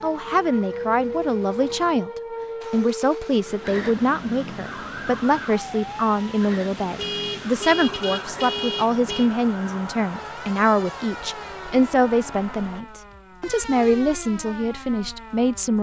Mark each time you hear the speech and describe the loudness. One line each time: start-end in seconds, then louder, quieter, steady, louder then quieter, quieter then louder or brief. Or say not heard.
0.0-2.1 brief
2.7-15.7 steady.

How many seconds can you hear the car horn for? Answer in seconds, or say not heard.
2 s.